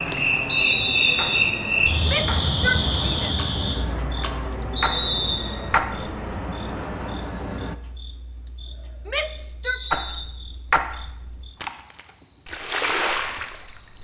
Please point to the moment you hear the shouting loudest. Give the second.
3 s.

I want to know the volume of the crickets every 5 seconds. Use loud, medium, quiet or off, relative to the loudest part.
loud, quiet, quiet.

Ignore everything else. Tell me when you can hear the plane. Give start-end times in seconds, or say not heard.
0.0-7.8.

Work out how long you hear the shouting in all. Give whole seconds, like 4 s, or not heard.
2 s.